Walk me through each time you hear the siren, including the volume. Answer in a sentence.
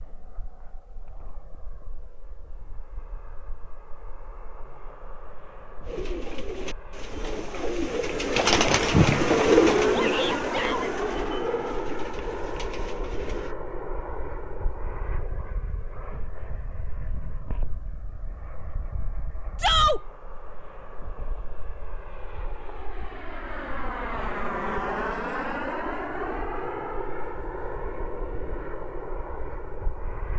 You can't hear the siren here.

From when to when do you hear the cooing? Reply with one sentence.
The cooing can be heard from 5.8 to 13.6 s.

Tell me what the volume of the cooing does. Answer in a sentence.
The loudness of the cooing goes up, then down.